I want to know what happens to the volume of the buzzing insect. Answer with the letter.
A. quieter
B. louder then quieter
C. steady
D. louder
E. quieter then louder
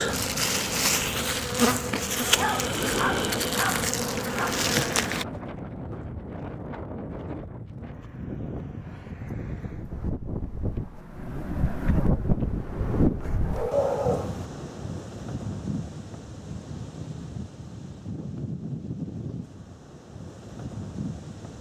C.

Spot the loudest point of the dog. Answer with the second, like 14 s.
14 s.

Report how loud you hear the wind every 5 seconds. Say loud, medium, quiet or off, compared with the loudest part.
medium, medium, loud, medium, medium.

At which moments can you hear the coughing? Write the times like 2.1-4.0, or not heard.
not heard.